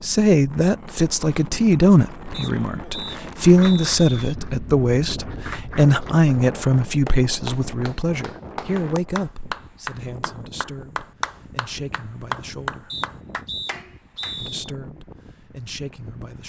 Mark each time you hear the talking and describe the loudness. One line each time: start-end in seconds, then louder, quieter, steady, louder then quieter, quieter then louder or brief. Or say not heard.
0.0-12.9 quieter
14.4-16.4 brief.